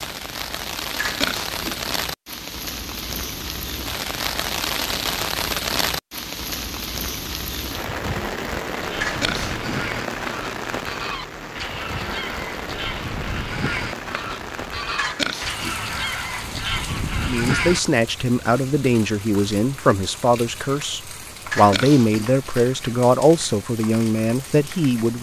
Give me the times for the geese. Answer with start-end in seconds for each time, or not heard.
8.6-17.8.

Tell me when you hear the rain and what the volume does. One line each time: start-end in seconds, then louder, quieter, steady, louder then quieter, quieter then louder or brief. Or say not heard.
0.0-25.1 quieter.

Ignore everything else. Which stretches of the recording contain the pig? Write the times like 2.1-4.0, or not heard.
0.9-1.9, 9.0-9.8, 14.9-15.8, 21.5-22.4.